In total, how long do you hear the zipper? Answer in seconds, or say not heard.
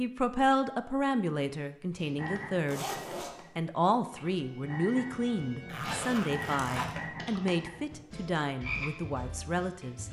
2 s.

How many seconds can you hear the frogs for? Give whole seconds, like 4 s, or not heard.
8 s.